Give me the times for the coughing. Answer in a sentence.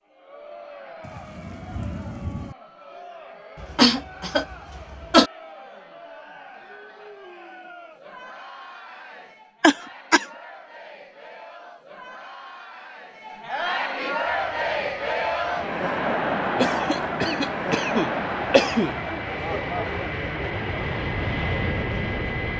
You can hear the coughing from 3.6 to 5.3 s, from 9.6 to 10.2 s and from 16.6 to 18.9 s.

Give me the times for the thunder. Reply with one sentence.
The thunder can be heard from 1.0 to 2.5 s.